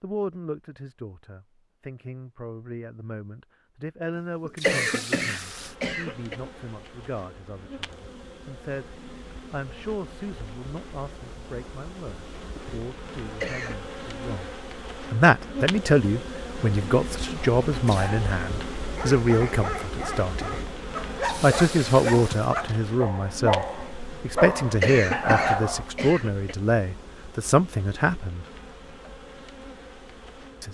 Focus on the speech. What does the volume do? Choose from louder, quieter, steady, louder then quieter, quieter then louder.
louder.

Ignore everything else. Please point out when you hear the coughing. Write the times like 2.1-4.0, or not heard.
4.5-6.3, 13.2-13.8, 24.6-26.6.